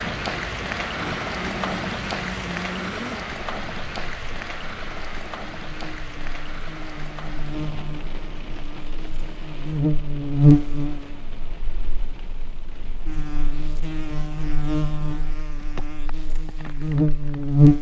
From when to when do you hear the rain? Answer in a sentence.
You can hear the rain from 0.0 to 17.7 s.